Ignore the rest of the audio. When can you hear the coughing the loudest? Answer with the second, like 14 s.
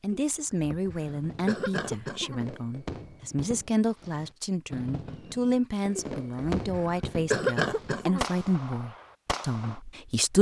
7 s.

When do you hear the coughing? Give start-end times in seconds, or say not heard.
0.1-2.5, 6.0-8.2.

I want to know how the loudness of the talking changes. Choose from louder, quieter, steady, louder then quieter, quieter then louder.
steady.